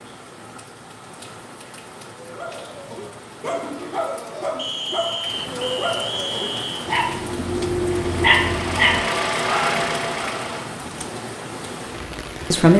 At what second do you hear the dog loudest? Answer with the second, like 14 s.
8 s.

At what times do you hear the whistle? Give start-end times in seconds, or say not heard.
4.5-6.9.